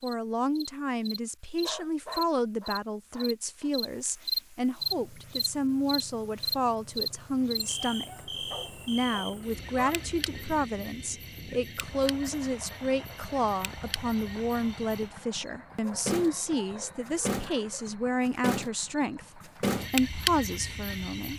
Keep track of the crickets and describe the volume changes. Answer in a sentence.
The volume of the crickets goes down, then up.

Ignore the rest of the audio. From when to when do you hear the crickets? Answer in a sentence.
You can hear the crickets from 0.0 to 21.3 s.